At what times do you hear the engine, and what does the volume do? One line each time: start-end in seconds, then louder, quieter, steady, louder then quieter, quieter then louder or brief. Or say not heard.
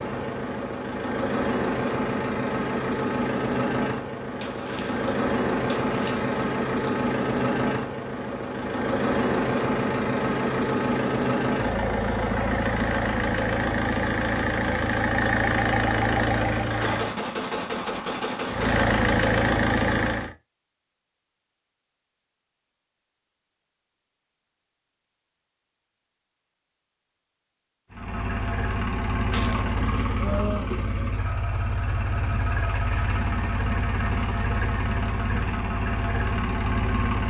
0.0-17.2 steady
18.4-20.4 brief
27.9-37.2 steady.